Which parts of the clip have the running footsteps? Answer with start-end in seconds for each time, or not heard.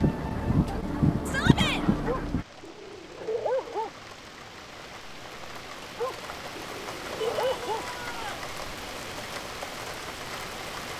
not heard.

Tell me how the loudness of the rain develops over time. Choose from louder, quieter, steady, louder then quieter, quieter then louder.
louder.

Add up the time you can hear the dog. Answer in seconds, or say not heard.
4 s.